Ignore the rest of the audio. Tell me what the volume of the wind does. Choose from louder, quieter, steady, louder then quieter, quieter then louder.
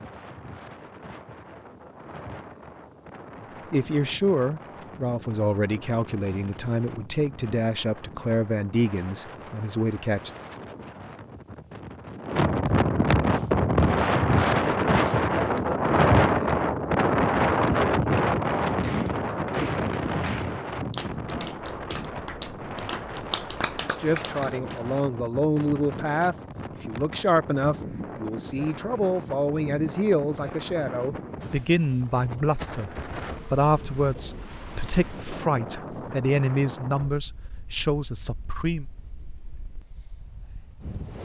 louder then quieter.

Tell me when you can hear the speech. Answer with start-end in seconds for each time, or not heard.
3.7-10.3, 23.9-38.9.